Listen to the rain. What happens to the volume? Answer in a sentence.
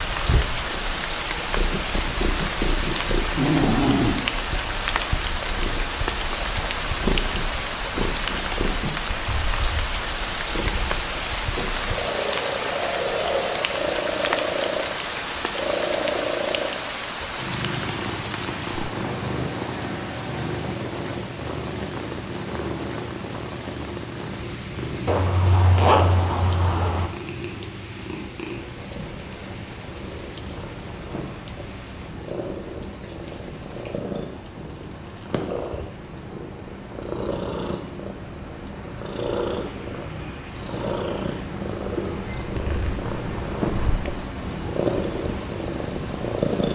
The loudness of the rain goes down.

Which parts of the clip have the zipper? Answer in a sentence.
You can hear the zipper from 3.4 to 4.2 s, from 25.1 to 27.1 s and from 42.4 to 44.1 s.